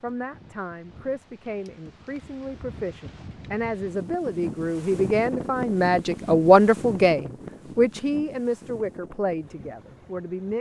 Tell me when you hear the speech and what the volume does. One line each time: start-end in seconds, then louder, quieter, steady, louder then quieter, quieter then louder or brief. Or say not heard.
0.0-10.5 louder then quieter.